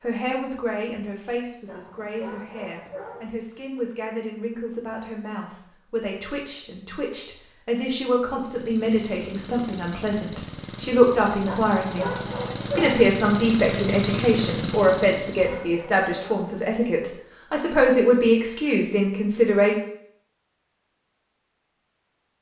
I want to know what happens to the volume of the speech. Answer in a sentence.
The volume of the speech goes up.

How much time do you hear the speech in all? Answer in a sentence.
You can hear the speech for 19 seconds altogether.